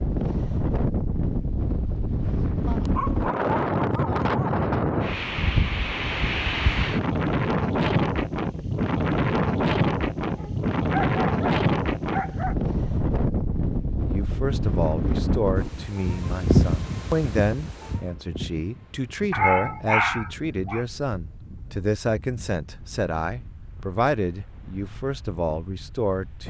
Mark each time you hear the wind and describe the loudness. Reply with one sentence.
You can hear the wind from 0.0 to 26.4 s, getting quieter.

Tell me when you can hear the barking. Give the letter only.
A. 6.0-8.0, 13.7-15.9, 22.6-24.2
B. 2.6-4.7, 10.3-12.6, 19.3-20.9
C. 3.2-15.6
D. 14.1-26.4
B.